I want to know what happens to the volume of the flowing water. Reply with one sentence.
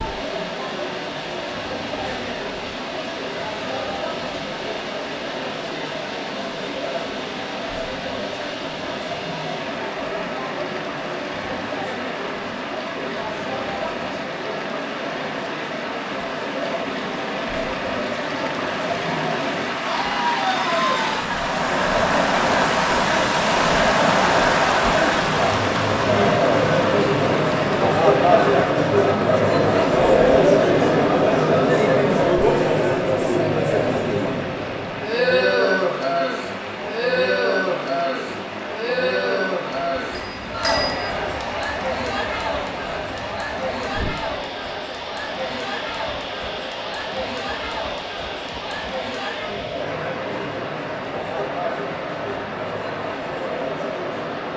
The loudness of the flowing water goes up, then down.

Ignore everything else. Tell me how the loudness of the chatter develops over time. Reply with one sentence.
The loudness of the chatter goes up, then down.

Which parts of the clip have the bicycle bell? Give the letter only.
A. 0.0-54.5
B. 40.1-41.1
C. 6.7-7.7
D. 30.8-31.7
B.